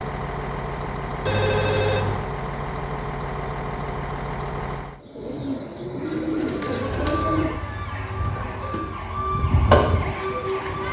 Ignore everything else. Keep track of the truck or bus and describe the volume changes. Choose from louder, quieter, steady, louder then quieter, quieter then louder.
steady.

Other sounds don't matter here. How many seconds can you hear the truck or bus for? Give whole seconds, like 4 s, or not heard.
5 s.